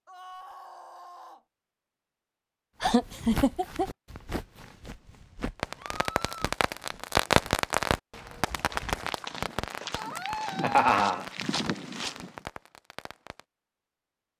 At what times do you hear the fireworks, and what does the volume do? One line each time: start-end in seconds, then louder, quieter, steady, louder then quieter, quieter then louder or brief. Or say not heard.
5.5-13.4 quieter.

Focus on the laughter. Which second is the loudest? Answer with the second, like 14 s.
11 s.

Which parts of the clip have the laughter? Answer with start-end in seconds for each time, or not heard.
2.8-3.9, 10.4-11.2.